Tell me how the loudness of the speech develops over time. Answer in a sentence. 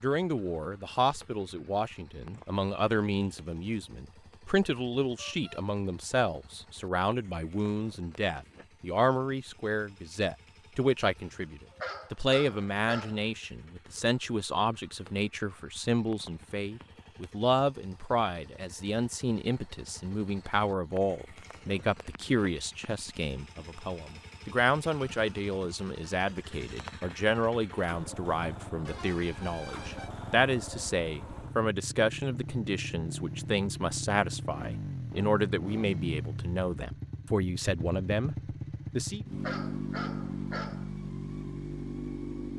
The loudness of the speech stays about the same.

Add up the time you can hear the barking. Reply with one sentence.
The barking can be heard for 3 seconds in total.